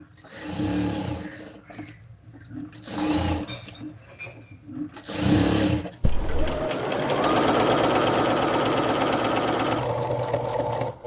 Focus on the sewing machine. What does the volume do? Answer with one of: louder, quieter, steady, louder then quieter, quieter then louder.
louder.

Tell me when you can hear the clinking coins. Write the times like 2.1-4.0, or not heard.
3.0-3.6, 6.0-6.6.